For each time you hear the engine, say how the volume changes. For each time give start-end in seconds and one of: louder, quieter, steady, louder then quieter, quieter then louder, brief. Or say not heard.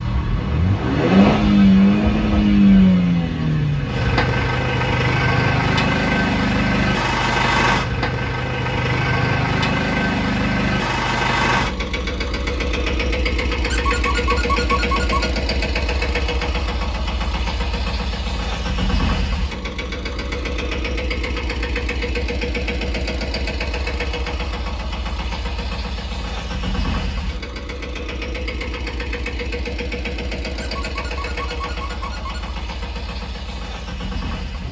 0.0-34.6 quieter.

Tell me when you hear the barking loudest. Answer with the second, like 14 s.
15 s.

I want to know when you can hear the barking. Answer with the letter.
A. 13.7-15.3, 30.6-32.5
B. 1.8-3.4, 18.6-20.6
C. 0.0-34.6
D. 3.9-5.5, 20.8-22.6
A.